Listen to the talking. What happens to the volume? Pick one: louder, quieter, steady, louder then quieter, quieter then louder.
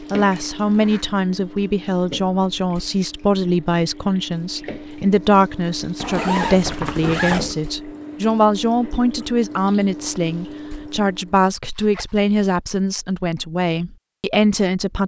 steady.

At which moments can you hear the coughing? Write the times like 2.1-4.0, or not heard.
not heard.